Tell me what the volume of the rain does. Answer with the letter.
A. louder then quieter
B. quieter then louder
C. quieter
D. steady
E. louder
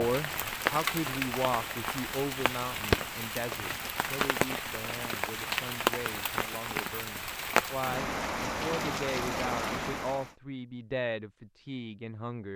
D.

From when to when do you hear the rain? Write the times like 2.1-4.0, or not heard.
0.0-10.3.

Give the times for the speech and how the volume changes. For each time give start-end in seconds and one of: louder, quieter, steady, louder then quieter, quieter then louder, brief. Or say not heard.
0.0-12.5 quieter then louder.